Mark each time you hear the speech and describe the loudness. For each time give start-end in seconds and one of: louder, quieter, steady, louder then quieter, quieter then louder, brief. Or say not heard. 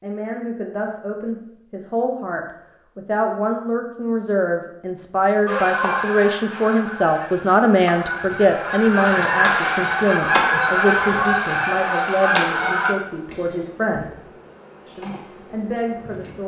0.0-14.2 louder then quieter
14.8-16.4 brief.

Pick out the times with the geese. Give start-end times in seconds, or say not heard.
5.5-12.9.